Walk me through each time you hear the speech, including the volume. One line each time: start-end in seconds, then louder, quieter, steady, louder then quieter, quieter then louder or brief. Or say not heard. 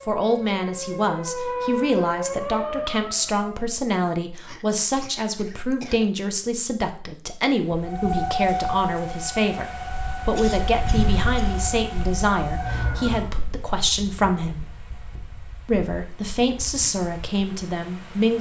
0.1-14.7 steady
15.7-18.3 brief.